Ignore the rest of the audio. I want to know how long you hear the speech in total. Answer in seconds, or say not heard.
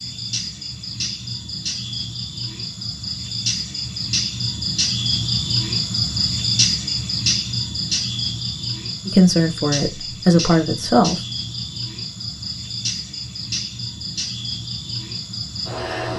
2 s.